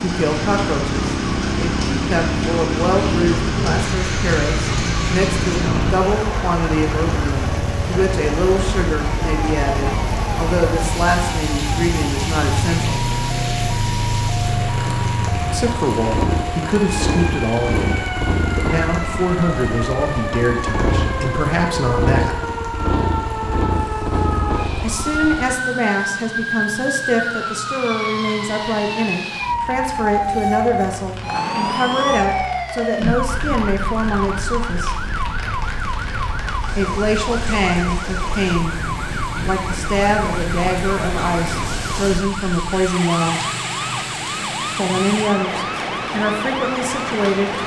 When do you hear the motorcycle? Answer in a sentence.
The motorcycle can be heard from 0.0 to 25.6 s.